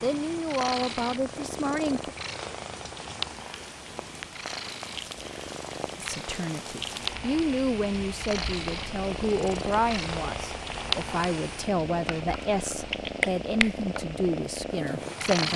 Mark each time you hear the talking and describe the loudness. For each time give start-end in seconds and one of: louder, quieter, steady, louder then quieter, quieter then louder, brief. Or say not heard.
0.0-2.1 brief
6.0-15.5 steady.